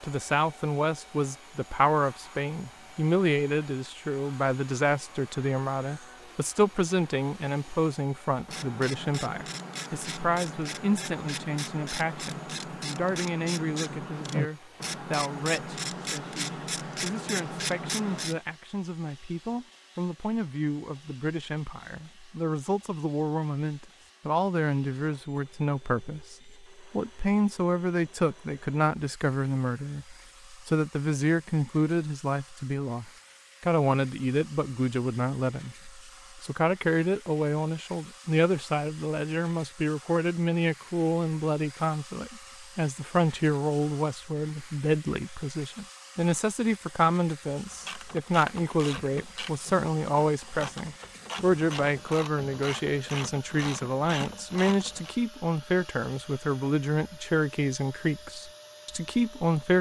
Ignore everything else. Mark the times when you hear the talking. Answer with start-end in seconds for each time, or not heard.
0.0-59.7.